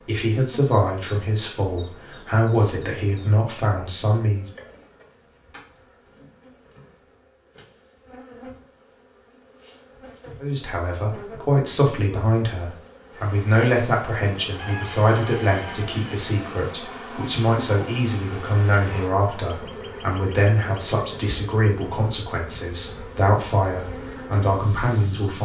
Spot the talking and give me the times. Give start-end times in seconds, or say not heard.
0.1-4.5, 10.4-25.4.